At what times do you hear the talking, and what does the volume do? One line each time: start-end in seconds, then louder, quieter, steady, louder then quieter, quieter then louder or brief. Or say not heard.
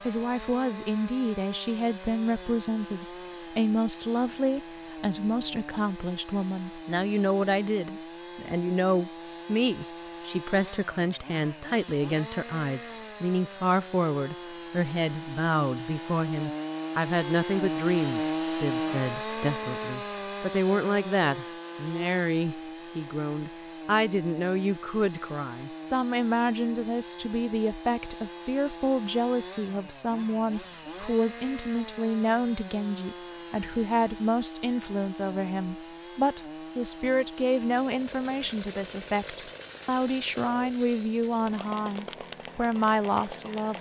0.0-43.7 steady.